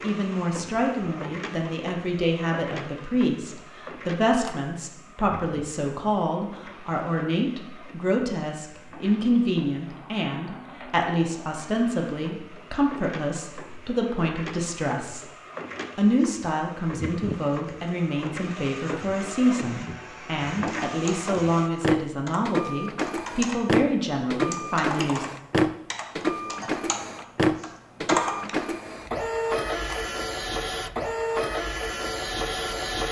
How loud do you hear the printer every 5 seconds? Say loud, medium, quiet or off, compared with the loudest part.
quiet, quiet, quiet, medium, loud, loud, loud.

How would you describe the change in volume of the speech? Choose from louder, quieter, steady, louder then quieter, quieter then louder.
steady.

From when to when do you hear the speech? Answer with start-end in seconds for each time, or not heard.
0.0-15.2, 15.9-25.2.